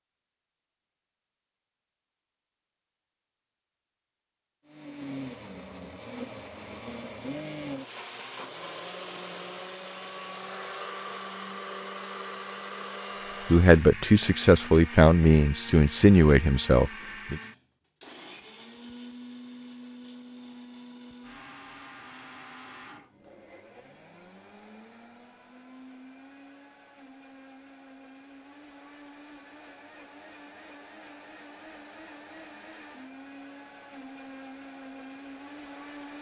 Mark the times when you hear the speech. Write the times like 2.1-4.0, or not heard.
13.5-17.4.